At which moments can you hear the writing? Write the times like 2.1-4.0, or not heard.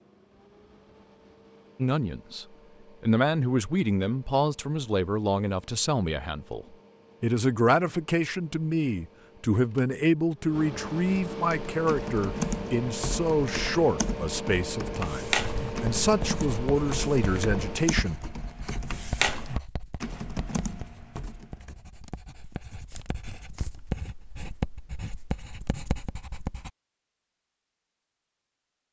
15.3-26.7.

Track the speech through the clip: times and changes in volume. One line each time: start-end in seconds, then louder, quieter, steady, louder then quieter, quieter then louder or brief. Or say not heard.
1.8-18.1 steady.